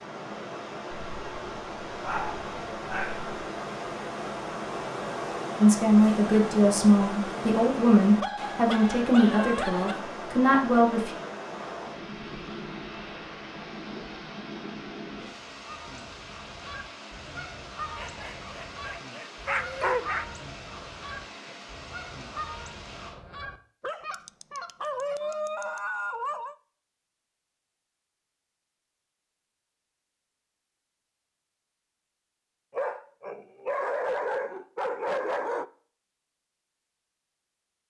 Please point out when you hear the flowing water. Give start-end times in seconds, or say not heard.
0.0-23.1.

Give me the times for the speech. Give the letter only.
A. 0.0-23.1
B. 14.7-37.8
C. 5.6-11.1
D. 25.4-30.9
C.